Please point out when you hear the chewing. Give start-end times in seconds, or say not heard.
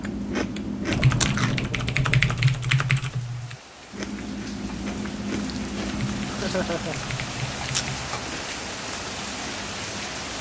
0.0-1.7, 3.9-10.1.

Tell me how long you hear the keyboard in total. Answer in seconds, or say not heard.
5 s.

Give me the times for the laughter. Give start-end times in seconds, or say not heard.
6.2-7.0.